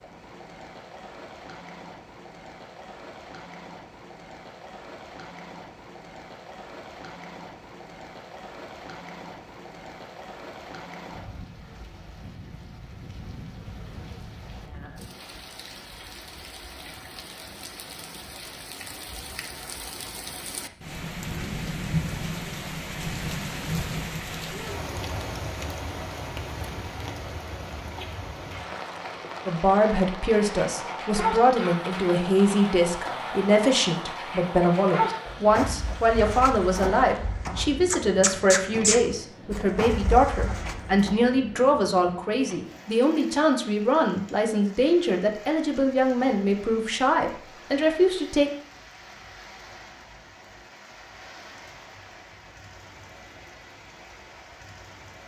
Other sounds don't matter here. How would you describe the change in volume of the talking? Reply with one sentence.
The volume of the talking stays about the same.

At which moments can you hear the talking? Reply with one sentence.
You can hear the talking from 29.4 to 48.5 s.